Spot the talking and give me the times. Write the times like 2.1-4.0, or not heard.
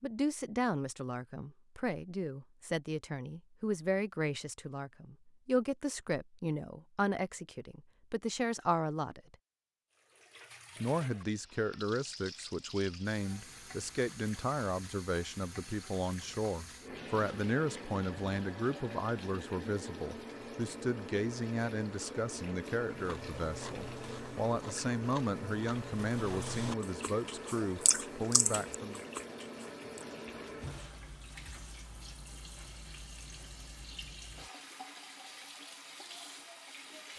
0.0-9.3, 10.8-29.0.